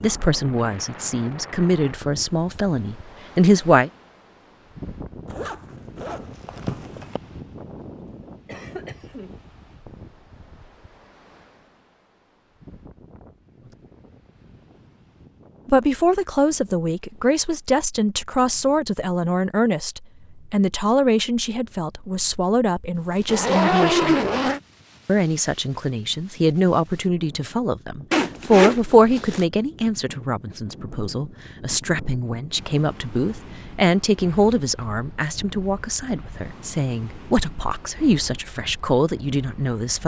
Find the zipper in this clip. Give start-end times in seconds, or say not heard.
5.3-7.2, 22.9-24.6, 28.1-29.4.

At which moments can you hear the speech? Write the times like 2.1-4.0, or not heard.
0.0-3.9, 15.7-24.1, 25.1-40.0.